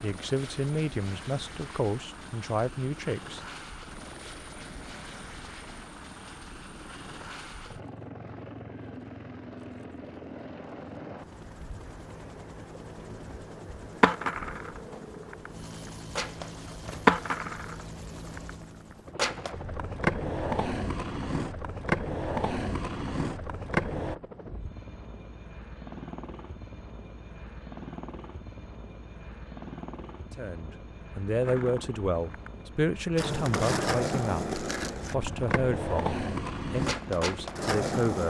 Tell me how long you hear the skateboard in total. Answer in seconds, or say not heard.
17 s.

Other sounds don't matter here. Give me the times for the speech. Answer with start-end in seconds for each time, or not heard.
0.0-3.4, 30.4-38.2.